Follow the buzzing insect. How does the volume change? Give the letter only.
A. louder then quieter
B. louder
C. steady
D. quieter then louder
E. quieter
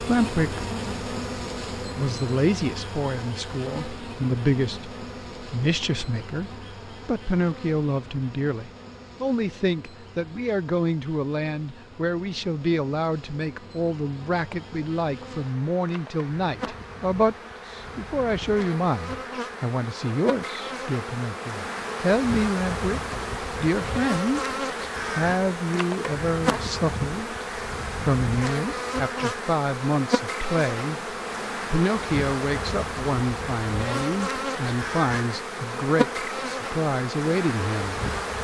D.